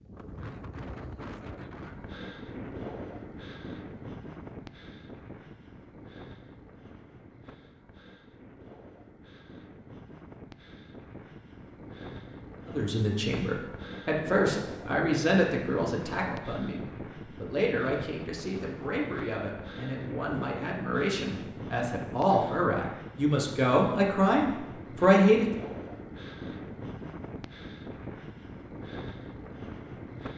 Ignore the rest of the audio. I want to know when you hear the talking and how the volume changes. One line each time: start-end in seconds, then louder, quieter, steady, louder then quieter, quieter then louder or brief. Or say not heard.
12.7-25.5 quieter then louder.